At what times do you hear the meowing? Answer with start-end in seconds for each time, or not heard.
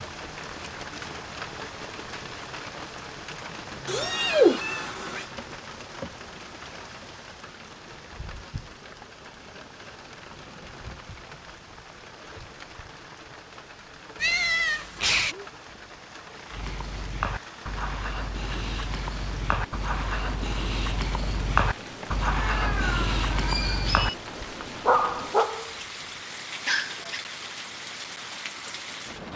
3.9-5.2, 14.2-15.3, 22.4-24.1.